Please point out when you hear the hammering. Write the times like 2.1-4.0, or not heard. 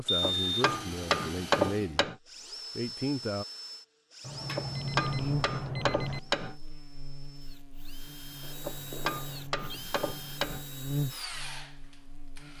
0.2-2.1, 4.5-6.5, 8.6-10.7.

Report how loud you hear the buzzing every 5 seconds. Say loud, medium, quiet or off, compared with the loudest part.
off, loud, loud.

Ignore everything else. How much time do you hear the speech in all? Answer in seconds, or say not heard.
3 s.